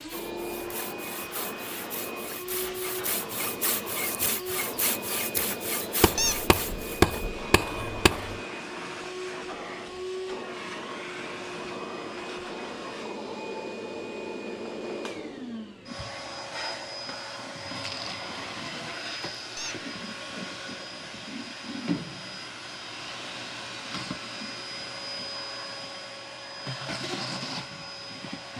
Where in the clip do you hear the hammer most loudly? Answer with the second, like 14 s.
7 s.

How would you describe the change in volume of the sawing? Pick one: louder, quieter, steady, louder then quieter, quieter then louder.
louder.